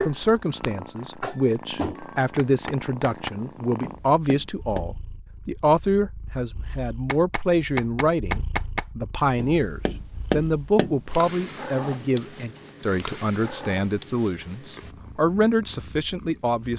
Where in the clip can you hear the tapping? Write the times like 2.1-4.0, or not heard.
0.0-4.9, 7.0-11.4.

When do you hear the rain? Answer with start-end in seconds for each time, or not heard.
not heard.